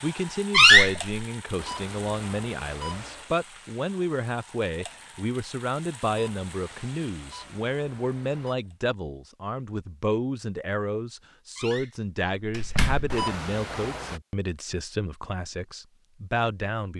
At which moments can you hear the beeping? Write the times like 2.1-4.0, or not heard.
1.6-3.3, 6.0-8.6, 13.1-14.2.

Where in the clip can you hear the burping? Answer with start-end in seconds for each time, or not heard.
not heard.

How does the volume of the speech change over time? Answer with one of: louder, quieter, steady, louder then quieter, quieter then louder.
steady.